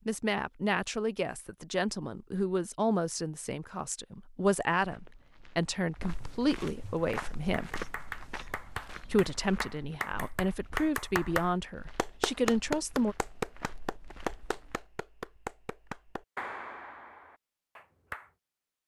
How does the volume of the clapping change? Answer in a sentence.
The volume of the clapping goes up, then down.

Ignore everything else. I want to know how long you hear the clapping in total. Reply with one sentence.
The clapping can be heard for 11 seconds in total.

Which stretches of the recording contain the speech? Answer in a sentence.
The speech can be heard from 0.1 to 7.7 s and from 9.1 to 13.2 s.